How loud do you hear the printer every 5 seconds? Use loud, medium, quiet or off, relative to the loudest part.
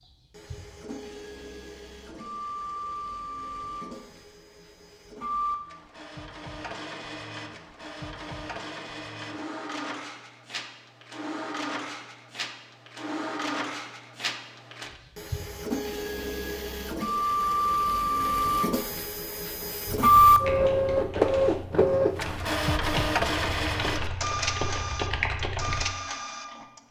quiet, quiet, quiet, medium, loud, quiet.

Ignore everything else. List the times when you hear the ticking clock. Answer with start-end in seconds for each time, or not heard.
not heard.